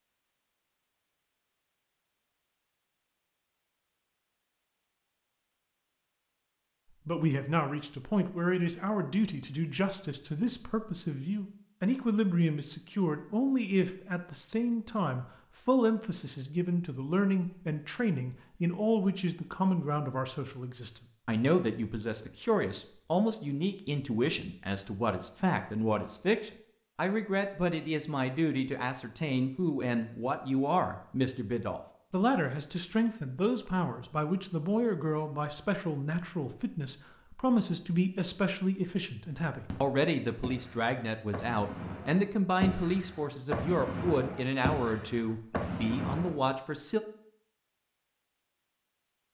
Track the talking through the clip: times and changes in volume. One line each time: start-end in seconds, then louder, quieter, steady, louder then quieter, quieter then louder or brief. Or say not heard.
7.0-47.0 steady.